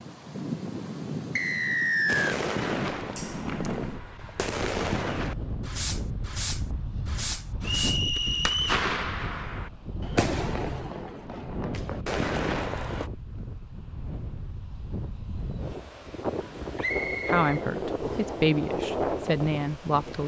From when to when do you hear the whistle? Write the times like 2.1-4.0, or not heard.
1.4-2.4, 7.6-8.8, 16.8-18.3.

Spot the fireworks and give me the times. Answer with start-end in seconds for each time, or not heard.
2.0-13.1.